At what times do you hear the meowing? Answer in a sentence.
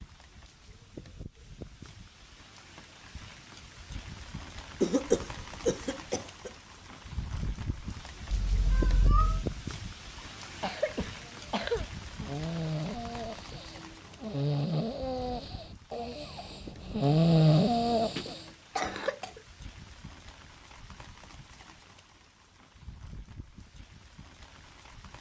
The meowing can be heard from 8.3 to 9.4 s.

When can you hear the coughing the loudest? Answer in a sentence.
The volume of the coughing peaks at 5 seconds.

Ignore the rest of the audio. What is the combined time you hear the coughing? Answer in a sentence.
You can hear the coughing for 5 seconds altogether.